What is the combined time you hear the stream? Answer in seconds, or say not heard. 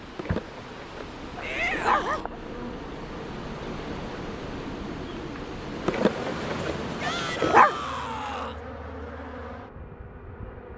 8 s.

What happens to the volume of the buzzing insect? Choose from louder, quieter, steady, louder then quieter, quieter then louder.
steady.